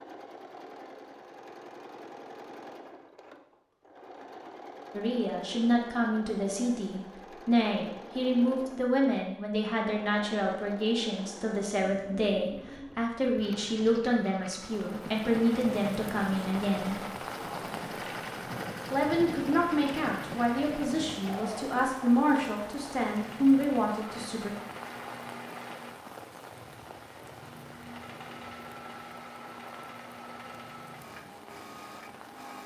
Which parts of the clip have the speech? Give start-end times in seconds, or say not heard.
4.9-17.0, 18.9-24.5.